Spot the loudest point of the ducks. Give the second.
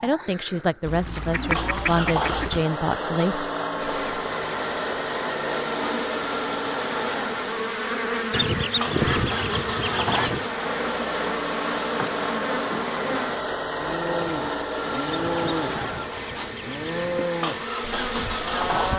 9 s.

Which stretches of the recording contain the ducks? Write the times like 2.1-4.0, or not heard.
0.8-2.6, 8.3-10.4, 15.1-17.2.